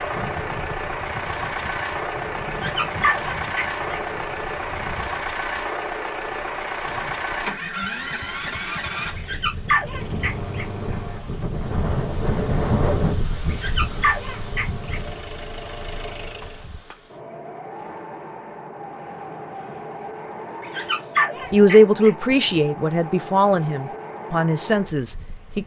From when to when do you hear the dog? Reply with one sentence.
The dog can be heard from 2.5 to 4.0 s, from 9.2 to 10.7 s, from 13.5 to 15.4 s and from 20.6 to 22.4 s.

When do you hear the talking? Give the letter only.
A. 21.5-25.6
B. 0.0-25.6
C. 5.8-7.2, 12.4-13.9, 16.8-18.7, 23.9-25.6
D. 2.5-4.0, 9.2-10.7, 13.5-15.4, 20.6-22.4
A.